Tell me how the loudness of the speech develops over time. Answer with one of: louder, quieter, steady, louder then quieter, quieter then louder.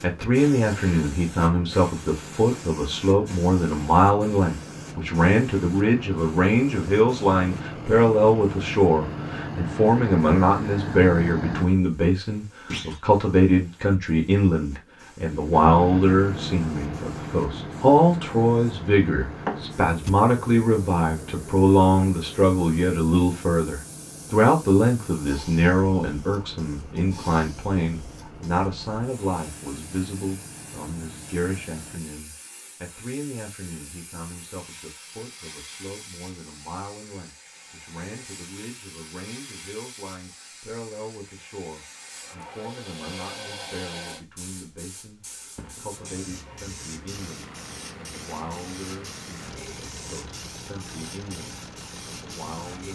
quieter.